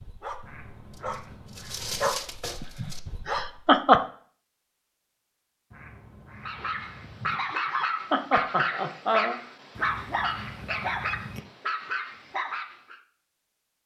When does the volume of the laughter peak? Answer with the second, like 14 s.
4 s.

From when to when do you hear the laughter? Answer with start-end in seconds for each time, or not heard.
2.6-4.0, 7.0-9.3.